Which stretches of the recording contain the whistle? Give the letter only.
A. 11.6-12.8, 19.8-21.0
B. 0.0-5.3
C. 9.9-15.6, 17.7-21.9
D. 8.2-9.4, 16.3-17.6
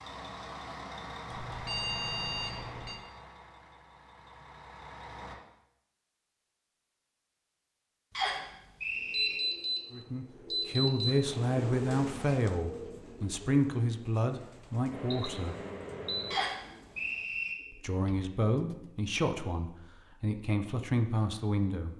D.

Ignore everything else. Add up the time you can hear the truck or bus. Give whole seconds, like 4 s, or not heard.
5 s.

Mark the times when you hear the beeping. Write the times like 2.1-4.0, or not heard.
1.2-3.0, 9.1-9.8, 10.5-11.2, 14.9-16.4.